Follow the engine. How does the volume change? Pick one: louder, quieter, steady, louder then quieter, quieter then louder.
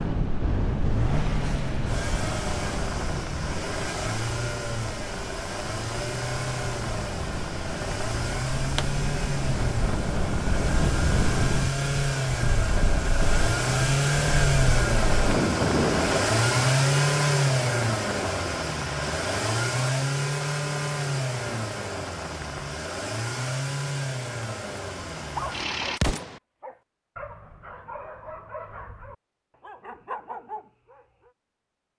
louder then quieter.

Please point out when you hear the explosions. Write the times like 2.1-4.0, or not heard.
25.9-26.4.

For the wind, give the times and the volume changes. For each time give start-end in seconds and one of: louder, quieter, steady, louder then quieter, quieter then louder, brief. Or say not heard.
0.0-16.4 quieter then louder.